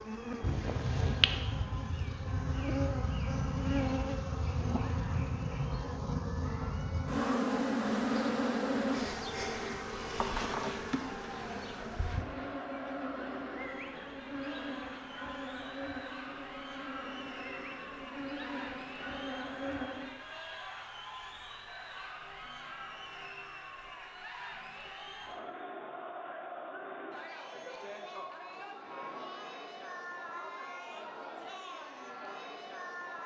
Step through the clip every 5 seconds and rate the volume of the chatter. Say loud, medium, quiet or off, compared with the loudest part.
medium, medium, loud, loud, loud, loud, loud.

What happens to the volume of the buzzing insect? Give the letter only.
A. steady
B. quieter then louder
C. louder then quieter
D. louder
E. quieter
E.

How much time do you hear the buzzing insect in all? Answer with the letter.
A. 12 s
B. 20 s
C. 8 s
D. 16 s
B.